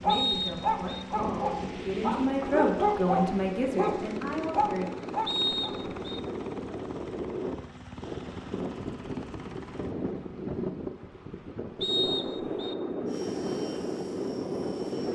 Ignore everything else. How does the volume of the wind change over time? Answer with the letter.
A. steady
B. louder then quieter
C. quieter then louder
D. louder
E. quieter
D.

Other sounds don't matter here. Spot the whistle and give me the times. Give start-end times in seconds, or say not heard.
0.1-1.1, 5.2-6.2, 11.8-12.8.